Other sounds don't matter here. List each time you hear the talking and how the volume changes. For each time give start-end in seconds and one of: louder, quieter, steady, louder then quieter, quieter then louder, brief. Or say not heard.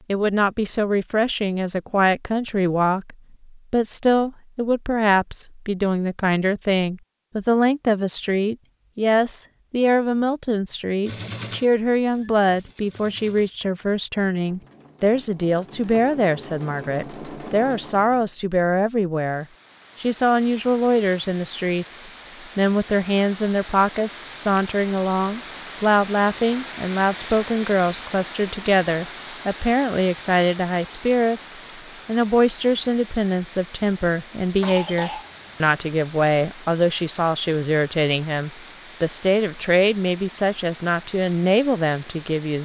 0.1-42.6 steady.